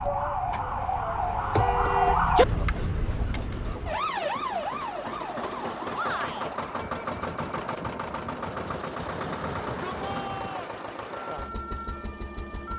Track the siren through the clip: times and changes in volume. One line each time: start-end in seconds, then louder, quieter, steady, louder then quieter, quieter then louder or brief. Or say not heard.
0.0-12.7 quieter.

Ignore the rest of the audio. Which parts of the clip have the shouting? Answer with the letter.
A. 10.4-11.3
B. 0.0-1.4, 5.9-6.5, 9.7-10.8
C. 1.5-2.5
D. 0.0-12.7
B.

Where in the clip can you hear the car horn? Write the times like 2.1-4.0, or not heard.
1.5-2.5.